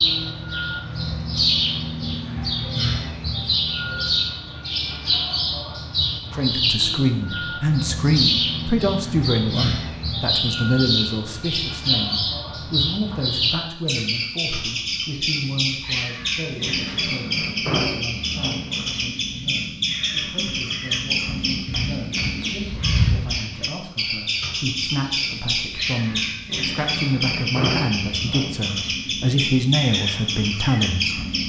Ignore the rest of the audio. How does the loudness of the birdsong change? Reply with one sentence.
The loudness of the birdsong stays about the same.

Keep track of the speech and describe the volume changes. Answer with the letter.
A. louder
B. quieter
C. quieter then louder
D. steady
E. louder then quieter
C.